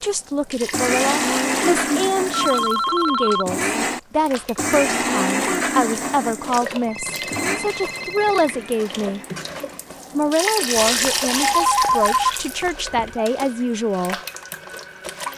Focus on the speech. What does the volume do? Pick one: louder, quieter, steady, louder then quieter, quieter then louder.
steady.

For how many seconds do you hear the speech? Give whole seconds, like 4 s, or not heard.
13 s.